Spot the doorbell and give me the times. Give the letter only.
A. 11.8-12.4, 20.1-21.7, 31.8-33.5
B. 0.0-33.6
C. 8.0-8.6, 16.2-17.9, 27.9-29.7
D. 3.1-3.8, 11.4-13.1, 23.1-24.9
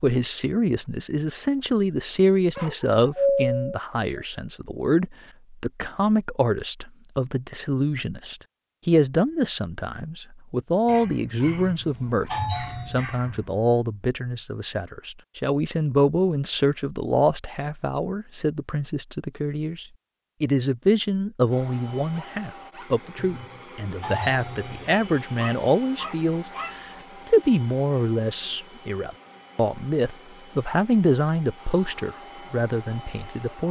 D.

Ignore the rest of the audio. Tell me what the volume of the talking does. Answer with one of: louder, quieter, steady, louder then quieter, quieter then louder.
steady.